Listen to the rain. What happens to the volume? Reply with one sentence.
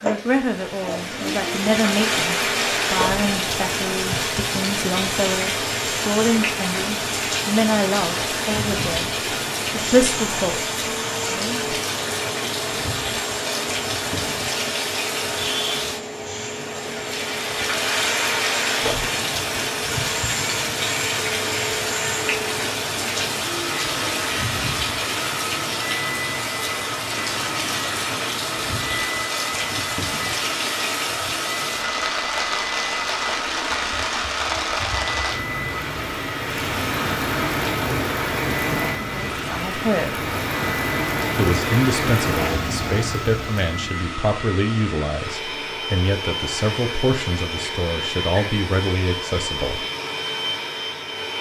The loudness of the rain stays about the same.